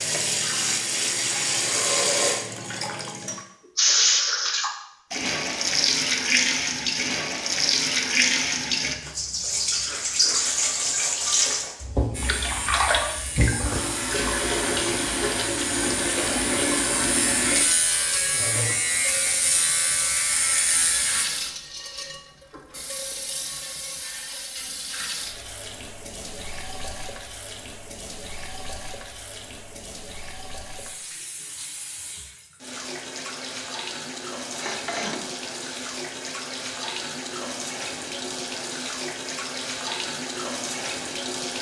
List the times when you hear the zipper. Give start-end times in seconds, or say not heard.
not heard.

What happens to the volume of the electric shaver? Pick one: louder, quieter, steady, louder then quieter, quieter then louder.
louder.